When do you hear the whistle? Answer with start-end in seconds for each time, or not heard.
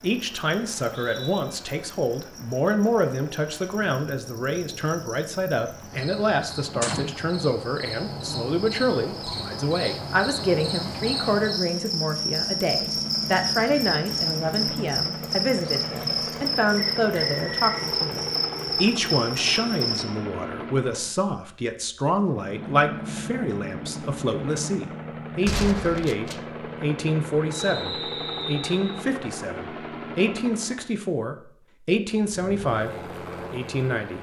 0.7-1.4, 16.8-17.9, 27.5-29.0.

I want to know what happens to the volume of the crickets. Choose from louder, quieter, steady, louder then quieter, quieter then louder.
louder.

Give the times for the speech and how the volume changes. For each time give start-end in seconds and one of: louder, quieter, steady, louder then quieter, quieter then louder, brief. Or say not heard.
0.0-34.1 steady.